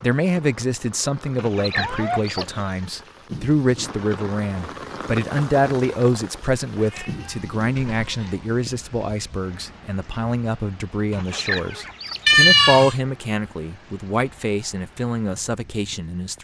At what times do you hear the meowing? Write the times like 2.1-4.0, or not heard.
1.8-2.6, 6.8-8.3, 12.2-12.9.